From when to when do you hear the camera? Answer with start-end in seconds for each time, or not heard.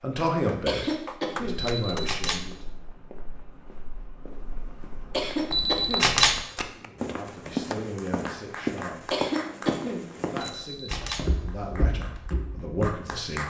1.6-2.5, 5.5-6.4, 10.4-11.3.